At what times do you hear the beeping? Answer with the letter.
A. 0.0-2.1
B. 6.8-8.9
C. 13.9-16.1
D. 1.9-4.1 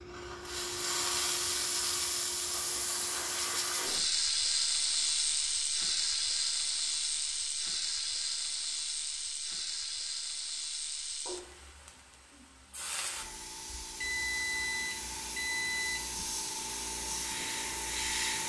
C.